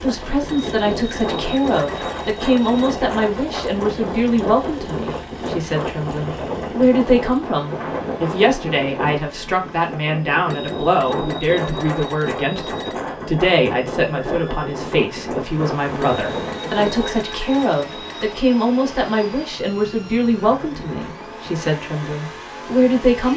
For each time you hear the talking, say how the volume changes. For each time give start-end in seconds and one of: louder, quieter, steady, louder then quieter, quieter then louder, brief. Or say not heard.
0.0-23.3 steady.